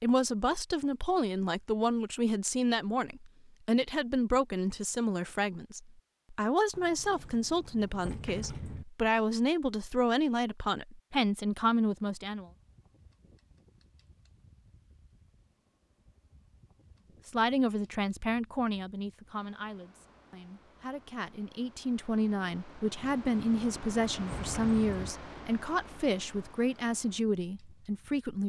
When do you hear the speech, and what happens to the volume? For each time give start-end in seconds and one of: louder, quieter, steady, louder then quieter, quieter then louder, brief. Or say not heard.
0.0-12.4 steady
17.2-28.4 quieter then louder.